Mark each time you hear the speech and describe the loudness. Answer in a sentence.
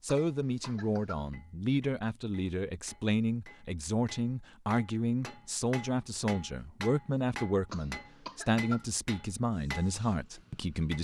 You can hear the speech from 0.0 to 10.9 s, at a steady volume.